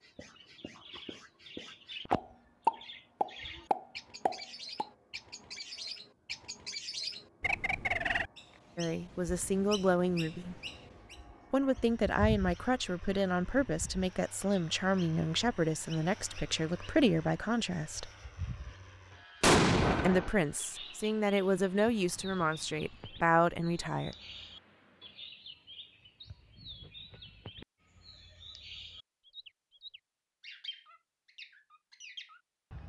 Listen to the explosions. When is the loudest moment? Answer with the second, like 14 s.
20 s.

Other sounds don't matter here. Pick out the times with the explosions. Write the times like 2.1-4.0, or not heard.
2.1-4.8, 19.4-20.3.